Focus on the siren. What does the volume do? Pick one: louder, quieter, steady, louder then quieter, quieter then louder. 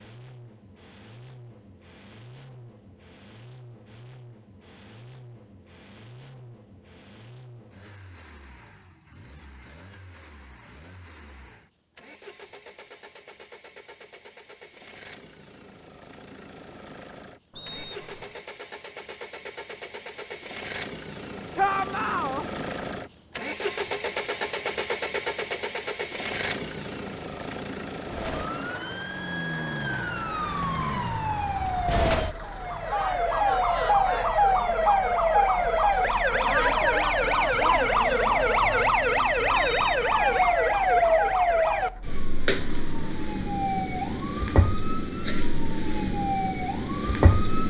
louder then quieter.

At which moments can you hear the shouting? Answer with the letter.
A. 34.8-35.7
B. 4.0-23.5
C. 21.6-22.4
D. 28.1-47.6
C.